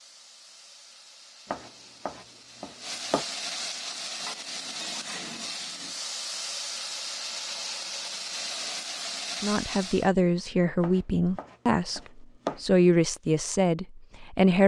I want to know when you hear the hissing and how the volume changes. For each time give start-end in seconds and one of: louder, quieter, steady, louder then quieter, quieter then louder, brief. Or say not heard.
0.0-10.1 louder.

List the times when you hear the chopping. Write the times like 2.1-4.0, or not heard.
1.4-3.2, 10.8-12.6.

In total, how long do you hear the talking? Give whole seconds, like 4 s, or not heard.
5 s.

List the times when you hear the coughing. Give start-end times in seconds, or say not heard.
not heard.